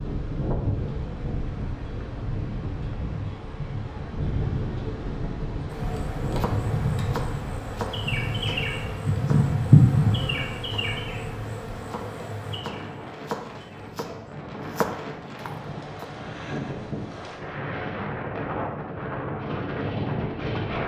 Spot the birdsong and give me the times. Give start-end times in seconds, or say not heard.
not heard.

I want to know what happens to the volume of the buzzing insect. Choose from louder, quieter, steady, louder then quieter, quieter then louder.
louder then quieter.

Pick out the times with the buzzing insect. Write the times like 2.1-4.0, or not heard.
5.7-13.8.